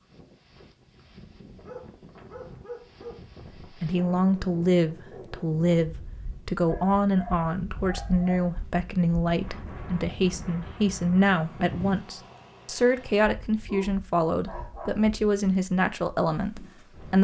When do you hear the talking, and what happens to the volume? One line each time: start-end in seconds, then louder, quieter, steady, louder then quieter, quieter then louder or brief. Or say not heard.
3.8-17.1 steady.